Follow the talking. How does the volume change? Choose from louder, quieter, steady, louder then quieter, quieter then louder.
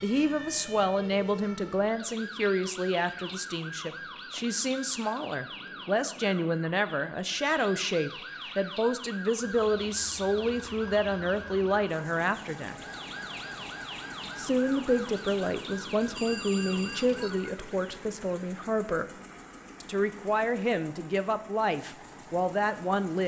steady.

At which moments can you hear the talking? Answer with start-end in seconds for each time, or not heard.
0.0-12.8, 14.3-19.1, 19.8-23.2.